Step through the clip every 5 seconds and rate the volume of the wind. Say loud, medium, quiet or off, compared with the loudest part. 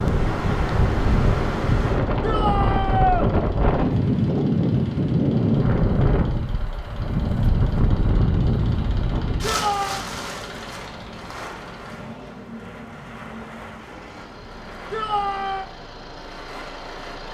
loud, loud, quiet, quiet.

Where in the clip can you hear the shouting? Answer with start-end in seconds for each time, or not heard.
2.2-3.3, 9.4-10.1, 14.9-15.7.